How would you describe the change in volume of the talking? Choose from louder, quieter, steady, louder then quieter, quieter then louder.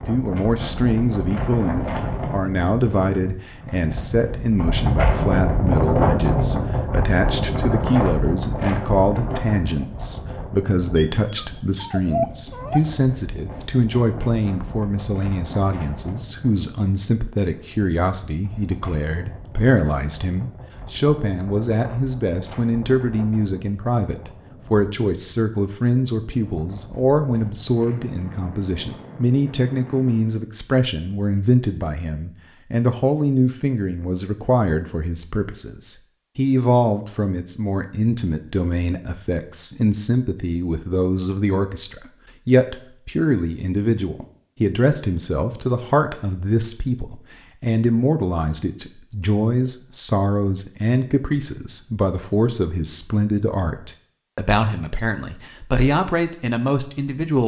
steady.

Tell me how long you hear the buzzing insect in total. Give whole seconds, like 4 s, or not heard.
not heard.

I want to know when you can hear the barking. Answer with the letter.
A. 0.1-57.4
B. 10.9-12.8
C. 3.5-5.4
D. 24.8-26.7
B.